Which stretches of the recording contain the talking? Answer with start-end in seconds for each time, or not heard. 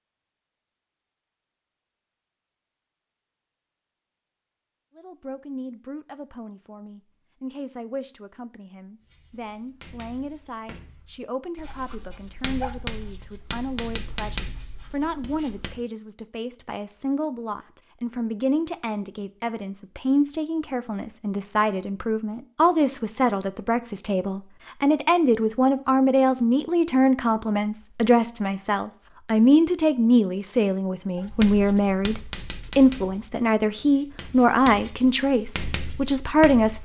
5.0-36.8.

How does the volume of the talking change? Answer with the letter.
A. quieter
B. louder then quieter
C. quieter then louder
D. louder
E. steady
D.